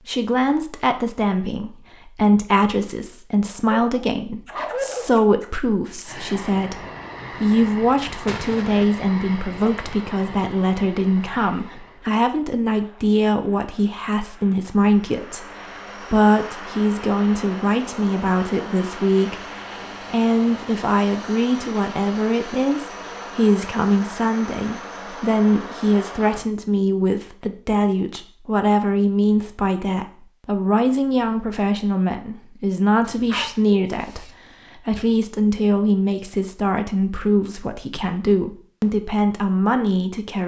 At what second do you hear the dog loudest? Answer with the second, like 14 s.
5 s.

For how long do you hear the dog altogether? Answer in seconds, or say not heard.
3 s.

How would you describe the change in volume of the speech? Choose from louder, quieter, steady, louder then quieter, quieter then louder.
steady.